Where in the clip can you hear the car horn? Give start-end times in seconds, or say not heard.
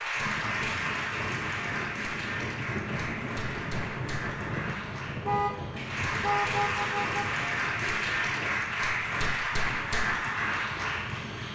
5.2-7.3.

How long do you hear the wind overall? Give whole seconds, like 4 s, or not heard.
11 s.